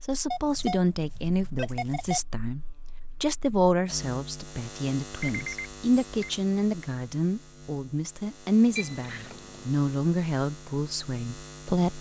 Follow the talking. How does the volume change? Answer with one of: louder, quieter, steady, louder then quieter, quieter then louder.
steady.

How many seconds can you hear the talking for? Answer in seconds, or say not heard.
12 s.